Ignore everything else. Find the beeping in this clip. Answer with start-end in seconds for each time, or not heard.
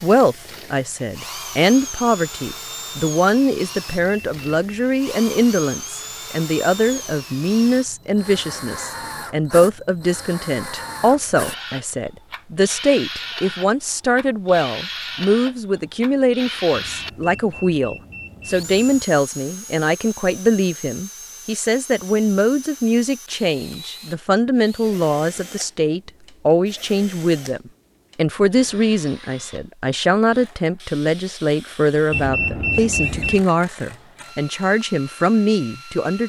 3.9-4.7, 16.7-19.1, 32.1-33.5.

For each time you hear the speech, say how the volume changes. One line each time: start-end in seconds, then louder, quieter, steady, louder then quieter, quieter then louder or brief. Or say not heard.
0.0-36.2 steady.